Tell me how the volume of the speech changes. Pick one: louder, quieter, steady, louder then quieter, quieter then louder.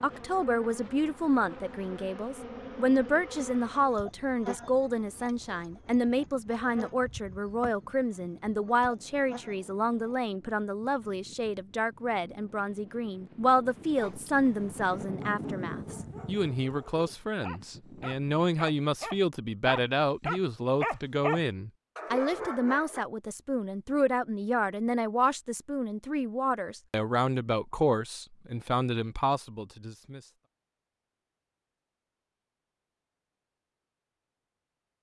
steady.